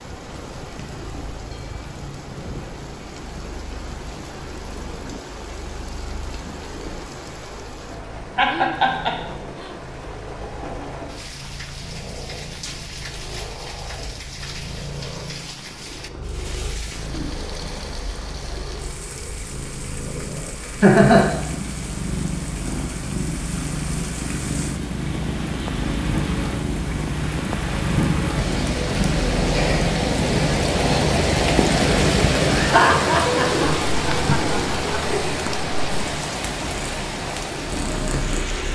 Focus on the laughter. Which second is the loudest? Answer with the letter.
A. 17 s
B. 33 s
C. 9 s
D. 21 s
D.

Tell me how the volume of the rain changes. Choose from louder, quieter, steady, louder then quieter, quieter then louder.
louder.